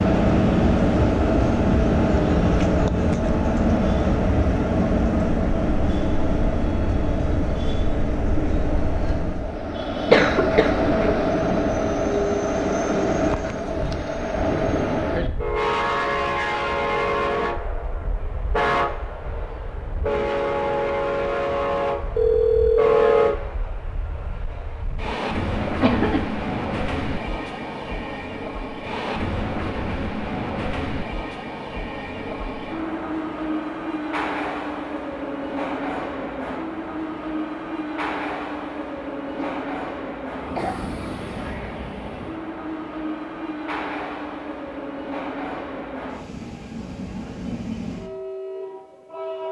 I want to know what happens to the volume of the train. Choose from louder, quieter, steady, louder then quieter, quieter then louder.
quieter.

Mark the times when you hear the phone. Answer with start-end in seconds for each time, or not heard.
22.1-23.3.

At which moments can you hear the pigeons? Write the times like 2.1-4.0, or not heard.
not heard.